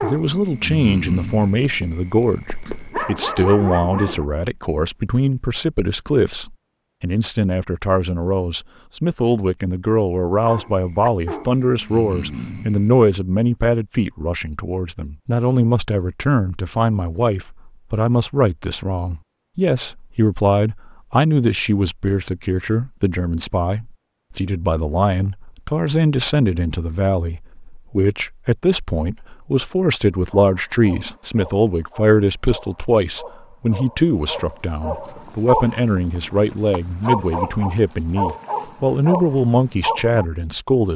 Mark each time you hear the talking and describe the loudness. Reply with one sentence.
You can hear the talking from 0.0 to 40.9 s, at a steady volume.